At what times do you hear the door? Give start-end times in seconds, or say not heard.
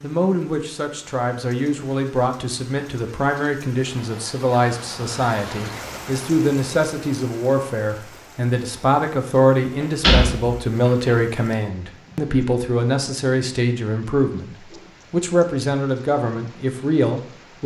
9.8-11.1.